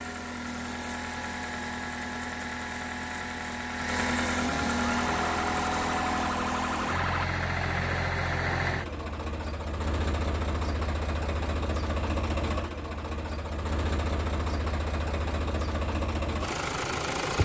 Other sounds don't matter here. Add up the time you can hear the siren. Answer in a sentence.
The siren can be heard for 2 seconds in total.